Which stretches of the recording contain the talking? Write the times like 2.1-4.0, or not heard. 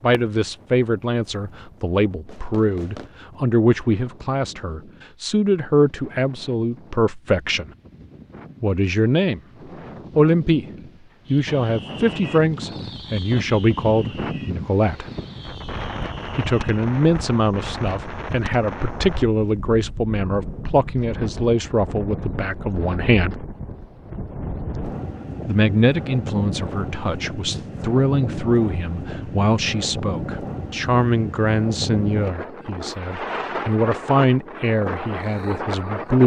0.0-7.7, 8.6-9.4, 10.2-10.7, 11.3-15.1, 16.4-23.4, 25.4-36.2.